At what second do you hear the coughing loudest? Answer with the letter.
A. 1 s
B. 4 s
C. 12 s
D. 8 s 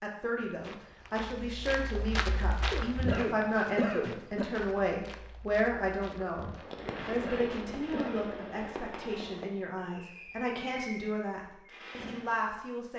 B.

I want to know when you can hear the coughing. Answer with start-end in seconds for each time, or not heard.
2.7-4.5, 6.8-8.2.